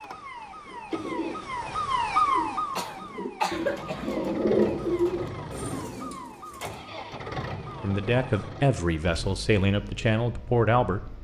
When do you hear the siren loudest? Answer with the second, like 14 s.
2 s.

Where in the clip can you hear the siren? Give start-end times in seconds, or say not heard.
0.0-8.5.